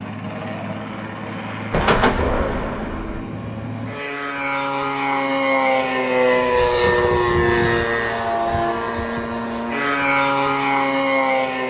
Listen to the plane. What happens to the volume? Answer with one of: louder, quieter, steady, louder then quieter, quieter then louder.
louder.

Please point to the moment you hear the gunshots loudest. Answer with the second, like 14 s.
2 s.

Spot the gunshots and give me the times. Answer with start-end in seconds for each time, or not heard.
1.7-3.2.